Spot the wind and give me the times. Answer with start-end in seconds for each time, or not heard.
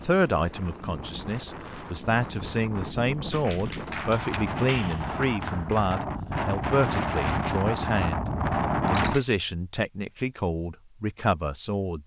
0.0-9.2.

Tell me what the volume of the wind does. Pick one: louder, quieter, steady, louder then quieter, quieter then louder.
louder.